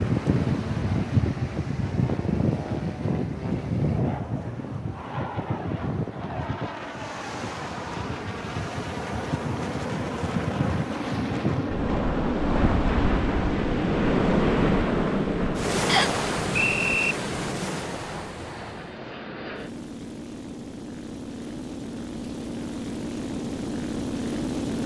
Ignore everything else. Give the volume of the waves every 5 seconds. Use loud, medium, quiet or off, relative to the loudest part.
loud, medium, loud, loud, off.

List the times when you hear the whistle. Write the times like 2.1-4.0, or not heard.
15.8-17.1.